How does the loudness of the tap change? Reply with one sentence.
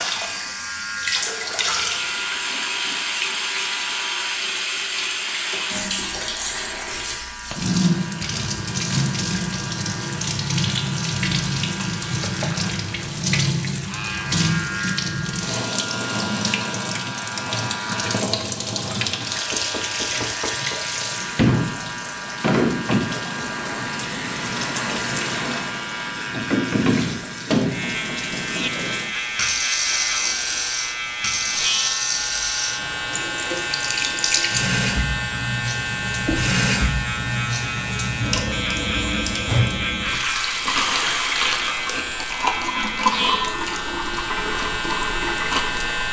The volume of the tap stays about the same.